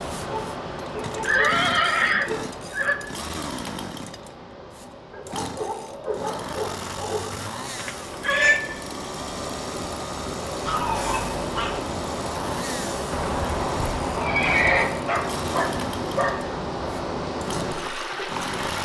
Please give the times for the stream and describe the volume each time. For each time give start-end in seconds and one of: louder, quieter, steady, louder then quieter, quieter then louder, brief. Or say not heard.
0.0-18.7 quieter then louder.